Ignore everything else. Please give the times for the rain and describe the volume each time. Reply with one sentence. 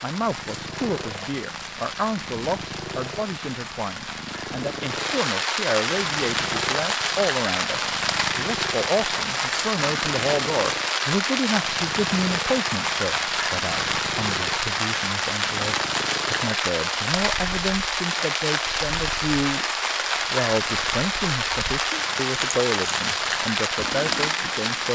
The rain can be heard from 0.0 to 24.8 s, getting louder.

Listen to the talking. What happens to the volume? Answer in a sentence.
The loudness of the talking stays about the same.